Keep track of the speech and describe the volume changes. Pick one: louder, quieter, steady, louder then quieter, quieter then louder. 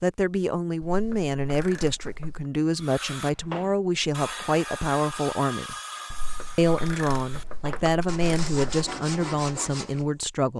steady.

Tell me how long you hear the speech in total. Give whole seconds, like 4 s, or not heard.
10 s.